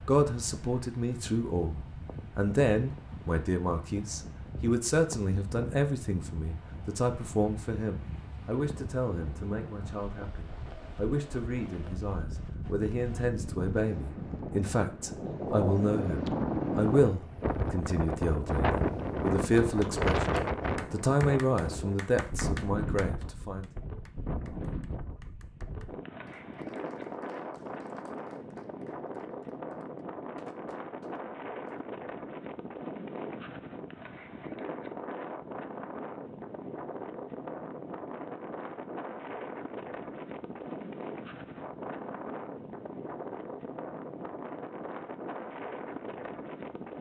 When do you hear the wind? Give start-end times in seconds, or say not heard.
0.0-46.9.